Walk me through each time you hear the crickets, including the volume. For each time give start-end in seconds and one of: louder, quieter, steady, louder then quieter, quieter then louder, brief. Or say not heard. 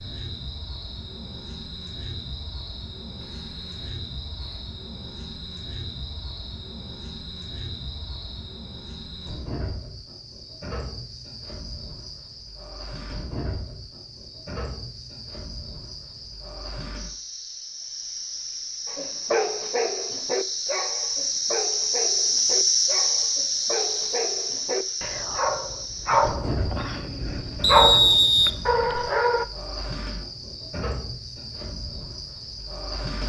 0.0-33.2 louder then quieter.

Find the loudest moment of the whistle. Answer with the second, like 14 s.
28 s.